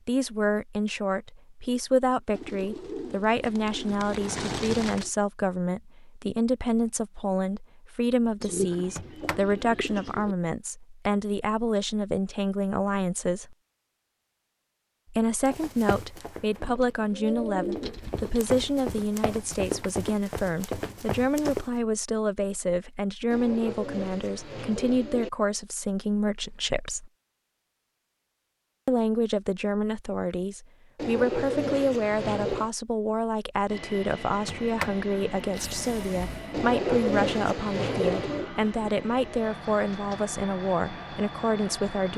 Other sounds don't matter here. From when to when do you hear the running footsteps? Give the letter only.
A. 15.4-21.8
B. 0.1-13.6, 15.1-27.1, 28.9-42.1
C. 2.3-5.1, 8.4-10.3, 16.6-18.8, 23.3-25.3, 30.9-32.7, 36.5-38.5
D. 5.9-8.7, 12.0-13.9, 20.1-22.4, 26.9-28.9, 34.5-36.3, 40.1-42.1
A.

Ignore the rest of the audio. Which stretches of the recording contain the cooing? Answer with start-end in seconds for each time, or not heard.
2.3-5.1, 8.4-10.3, 16.6-18.8, 23.3-25.3, 30.9-32.7, 36.5-38.5.